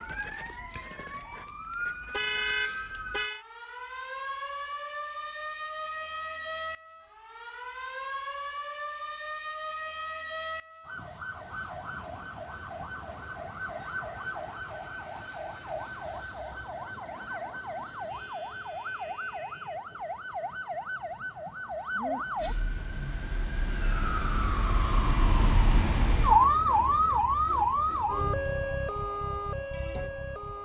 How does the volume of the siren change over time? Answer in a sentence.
The volume of the siren goes up.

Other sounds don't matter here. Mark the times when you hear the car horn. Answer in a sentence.
The car horn can be heard from 2.1 to 3.5 s.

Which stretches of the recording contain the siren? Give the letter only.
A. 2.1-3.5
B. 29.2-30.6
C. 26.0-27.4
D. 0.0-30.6
D.